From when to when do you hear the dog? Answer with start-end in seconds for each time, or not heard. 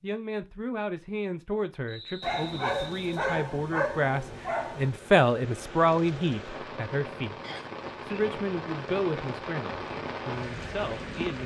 2.2-4.9.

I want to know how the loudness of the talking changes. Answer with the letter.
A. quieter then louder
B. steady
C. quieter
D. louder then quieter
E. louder
D.